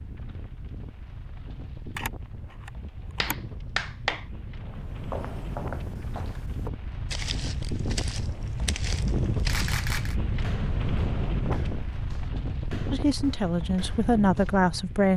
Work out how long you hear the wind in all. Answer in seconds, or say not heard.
15 s.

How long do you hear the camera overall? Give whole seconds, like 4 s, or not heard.
2 s.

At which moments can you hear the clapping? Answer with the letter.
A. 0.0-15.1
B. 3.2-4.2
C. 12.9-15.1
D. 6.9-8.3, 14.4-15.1
B.